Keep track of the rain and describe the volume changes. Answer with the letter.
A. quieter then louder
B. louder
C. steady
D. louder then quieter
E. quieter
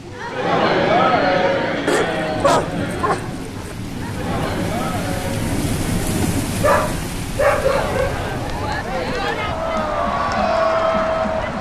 D.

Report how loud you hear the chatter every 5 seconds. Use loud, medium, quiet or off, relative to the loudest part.
loud, medium, loud.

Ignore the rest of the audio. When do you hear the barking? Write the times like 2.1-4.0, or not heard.
1.9-3.8, 6.6-8.2.